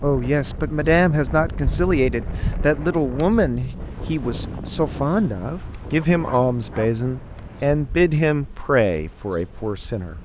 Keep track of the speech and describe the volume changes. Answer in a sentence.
The loudness of the speech stays about the same.